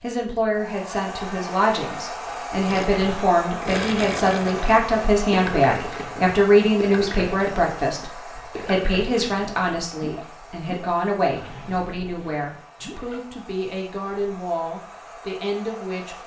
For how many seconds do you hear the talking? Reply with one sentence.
The talking can be heard for 16 seconds in total.